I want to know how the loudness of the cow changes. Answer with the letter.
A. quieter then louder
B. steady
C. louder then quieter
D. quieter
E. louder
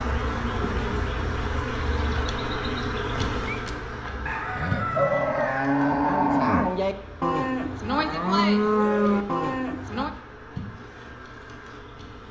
E.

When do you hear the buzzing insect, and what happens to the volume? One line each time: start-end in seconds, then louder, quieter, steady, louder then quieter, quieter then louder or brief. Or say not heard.
0.0-12.2 quieter.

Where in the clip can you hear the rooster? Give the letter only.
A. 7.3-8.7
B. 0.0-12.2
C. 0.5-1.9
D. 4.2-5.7
D.